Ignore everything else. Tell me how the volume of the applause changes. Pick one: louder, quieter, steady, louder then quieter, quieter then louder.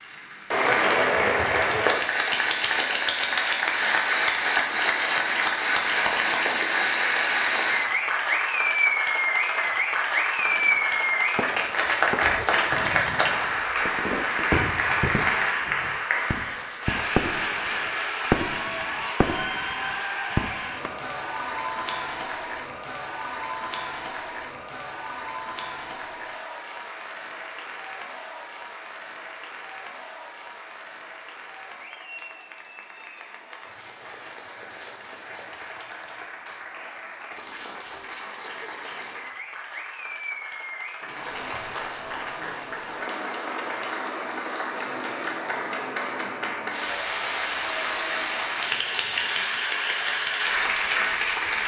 quieter then louder.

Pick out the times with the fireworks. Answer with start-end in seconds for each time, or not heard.
10.3-17.7, 18.3-19.8, 20.4-21.0.